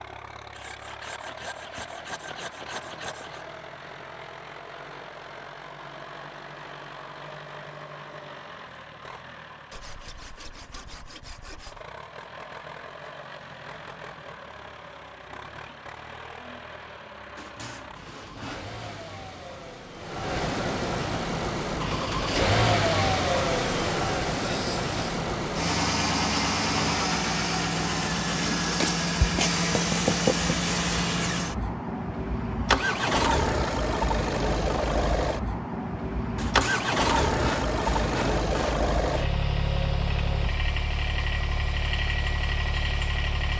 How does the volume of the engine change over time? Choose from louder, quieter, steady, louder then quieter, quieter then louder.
louder.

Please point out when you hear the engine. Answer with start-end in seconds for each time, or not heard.
0.0-43.5.